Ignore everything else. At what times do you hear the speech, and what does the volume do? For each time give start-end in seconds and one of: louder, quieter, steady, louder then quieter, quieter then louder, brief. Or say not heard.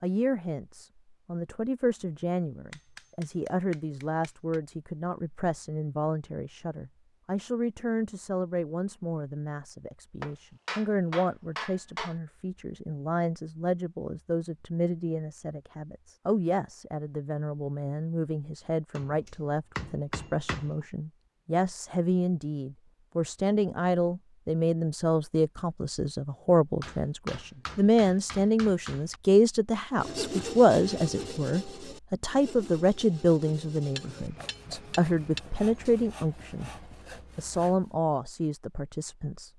0.0-36.7 louder
37.4-39.5 brief.